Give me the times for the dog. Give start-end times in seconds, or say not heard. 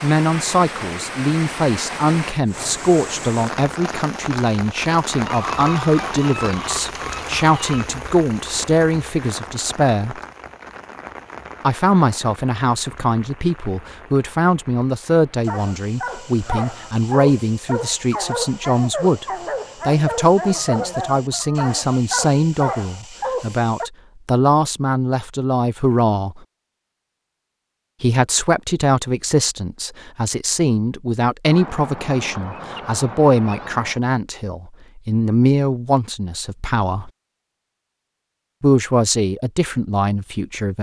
15.4-23.9.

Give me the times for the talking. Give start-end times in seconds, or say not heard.
0.0-10.2, 11.6-19.2, 19.9-26.4, 28.0-37.1, 38.6-40.7.